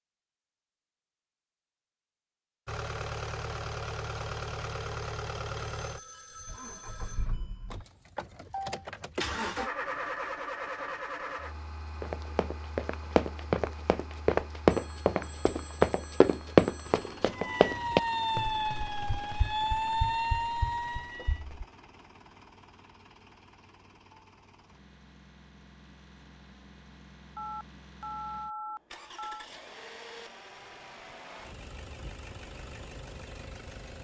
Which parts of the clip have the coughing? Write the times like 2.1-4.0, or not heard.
not heard.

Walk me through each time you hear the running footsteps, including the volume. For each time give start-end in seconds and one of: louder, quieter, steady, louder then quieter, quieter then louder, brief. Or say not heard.
12.0-21.6 louder then quieter.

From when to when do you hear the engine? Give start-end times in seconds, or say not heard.
2.6-33.9.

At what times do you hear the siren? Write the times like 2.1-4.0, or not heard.
17.3-21.4.